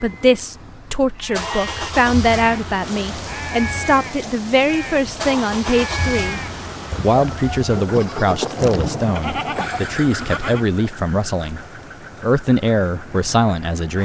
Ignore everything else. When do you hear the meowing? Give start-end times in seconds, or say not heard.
not heard.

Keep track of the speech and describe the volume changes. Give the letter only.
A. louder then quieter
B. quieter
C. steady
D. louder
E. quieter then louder
C.